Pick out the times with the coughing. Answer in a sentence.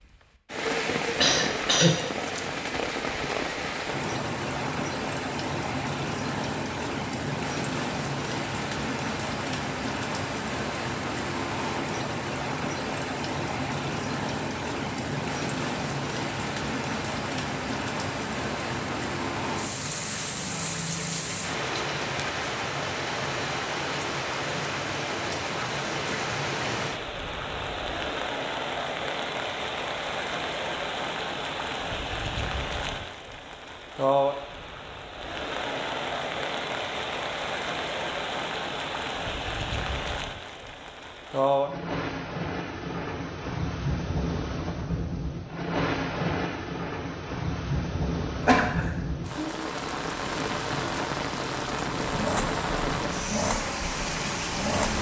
The coughing can be heard from 1.2 to 1.9 s and from 48.4 to 48.9 s.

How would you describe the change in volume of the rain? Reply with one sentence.
The volume of the rain stays about the same.